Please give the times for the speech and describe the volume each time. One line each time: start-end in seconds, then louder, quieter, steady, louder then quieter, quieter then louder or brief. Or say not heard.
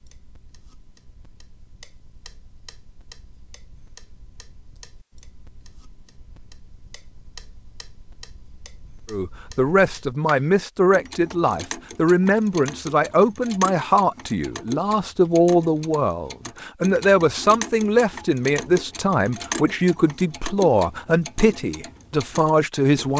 9.1-23.1 steady.